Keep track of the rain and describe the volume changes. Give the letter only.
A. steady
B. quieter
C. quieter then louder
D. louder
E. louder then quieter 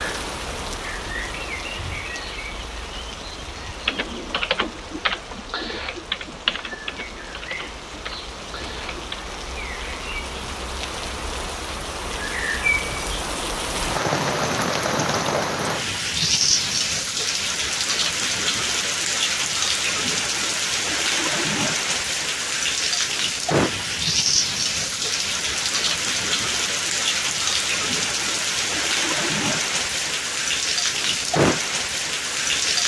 D.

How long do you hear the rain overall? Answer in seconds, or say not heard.
33 s.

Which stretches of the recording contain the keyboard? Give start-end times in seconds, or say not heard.
3.6-9.2.